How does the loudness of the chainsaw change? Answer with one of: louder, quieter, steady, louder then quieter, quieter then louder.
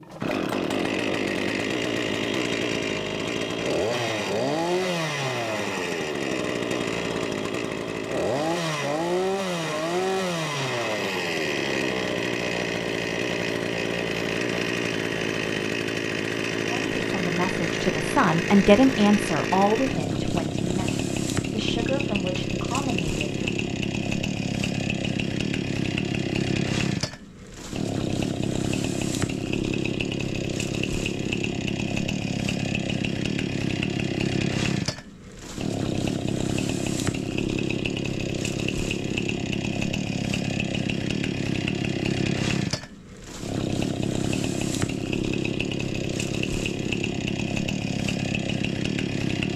steady.